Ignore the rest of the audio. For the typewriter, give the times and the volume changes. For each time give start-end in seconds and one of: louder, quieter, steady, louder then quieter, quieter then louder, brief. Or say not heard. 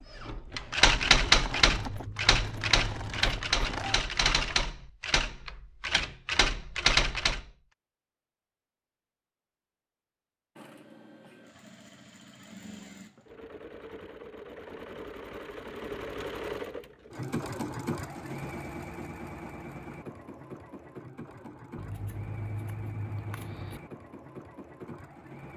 0.2-7.4 quieter then louder.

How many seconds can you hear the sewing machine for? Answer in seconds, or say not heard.
19 s.